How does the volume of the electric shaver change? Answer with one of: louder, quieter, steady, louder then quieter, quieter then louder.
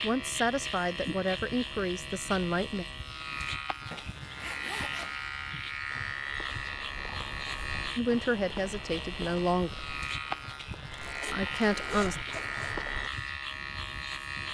steady.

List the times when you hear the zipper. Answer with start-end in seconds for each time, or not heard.
3.9-5.2, 10.9-12.8.